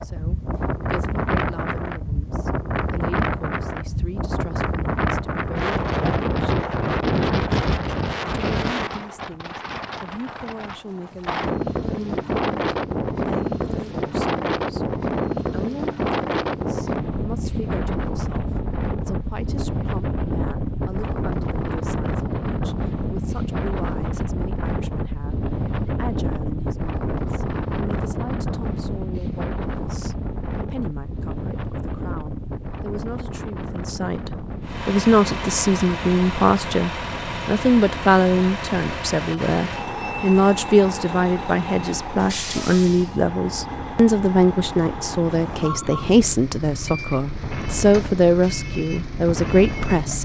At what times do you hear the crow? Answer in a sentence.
You can't hear the crow here.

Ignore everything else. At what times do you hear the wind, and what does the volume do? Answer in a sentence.
You can hear the wind from 0.0 to 50.2 s, getting quieter.